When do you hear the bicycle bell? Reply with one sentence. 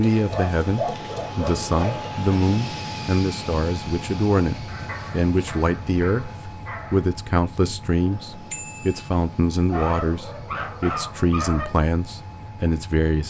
The bicycle bell can be heard from 8.5 to 9.1 s.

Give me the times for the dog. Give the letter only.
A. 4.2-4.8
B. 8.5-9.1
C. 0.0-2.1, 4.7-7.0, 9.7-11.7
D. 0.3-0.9
C.